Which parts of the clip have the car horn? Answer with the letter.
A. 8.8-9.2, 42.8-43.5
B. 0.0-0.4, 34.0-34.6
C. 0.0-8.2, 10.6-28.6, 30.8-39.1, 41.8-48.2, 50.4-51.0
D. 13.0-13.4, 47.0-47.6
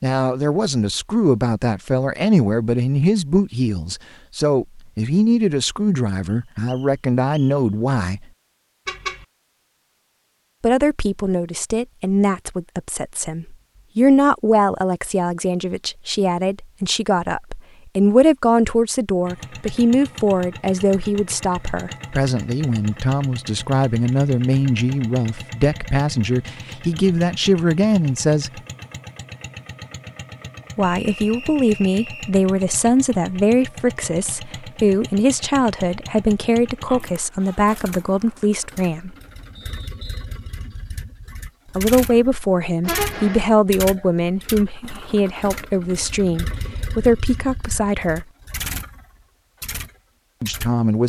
A.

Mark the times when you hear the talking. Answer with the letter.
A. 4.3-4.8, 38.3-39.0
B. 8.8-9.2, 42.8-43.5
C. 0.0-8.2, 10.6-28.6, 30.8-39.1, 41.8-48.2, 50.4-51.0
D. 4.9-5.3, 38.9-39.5
C.